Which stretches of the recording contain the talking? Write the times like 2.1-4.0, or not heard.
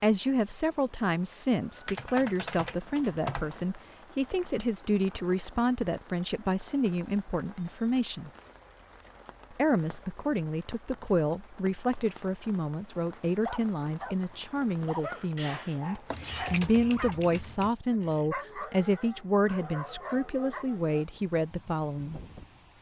0.0-8.3, 9.5-22.2.